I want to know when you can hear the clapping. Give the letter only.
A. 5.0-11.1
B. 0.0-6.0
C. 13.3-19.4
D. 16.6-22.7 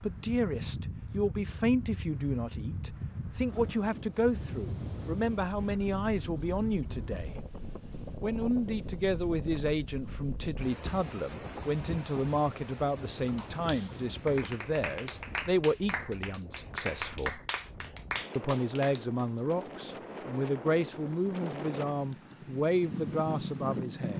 C.